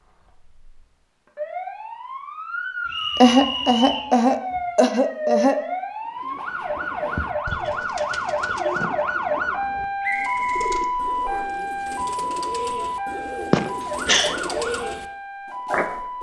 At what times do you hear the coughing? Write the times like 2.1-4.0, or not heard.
3.1-5.5, 13.5-14.3.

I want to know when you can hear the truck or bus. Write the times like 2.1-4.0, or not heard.
not heard.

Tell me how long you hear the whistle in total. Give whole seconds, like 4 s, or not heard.
3 s.